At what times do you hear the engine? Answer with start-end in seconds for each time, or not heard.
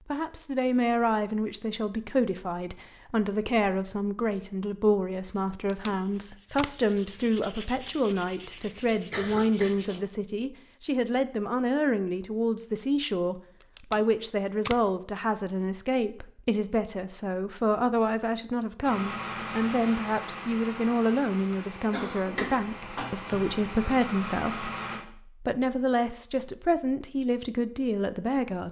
18.8-25.1.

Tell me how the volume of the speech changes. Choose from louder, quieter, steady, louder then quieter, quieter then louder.
steady.